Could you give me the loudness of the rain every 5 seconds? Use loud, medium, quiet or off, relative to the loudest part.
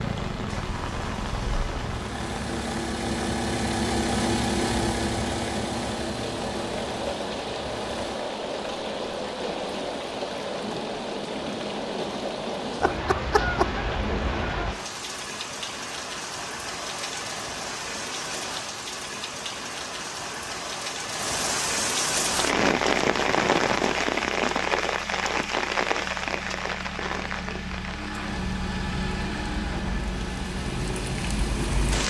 medium, medium, medium, medium, loud, medium, medium.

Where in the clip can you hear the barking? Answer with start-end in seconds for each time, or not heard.
not heard.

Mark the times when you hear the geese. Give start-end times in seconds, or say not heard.
12.8-14.8.